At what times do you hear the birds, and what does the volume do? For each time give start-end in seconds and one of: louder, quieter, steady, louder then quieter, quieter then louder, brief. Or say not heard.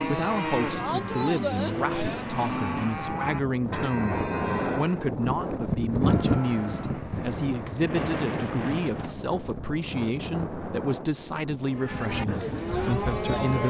not heard.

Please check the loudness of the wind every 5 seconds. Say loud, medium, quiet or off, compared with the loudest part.
loud, loud, medium.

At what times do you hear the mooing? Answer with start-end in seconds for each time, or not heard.
0.0-7.0, 11.7-13.6.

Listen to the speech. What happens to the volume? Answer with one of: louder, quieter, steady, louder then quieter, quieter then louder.
steady.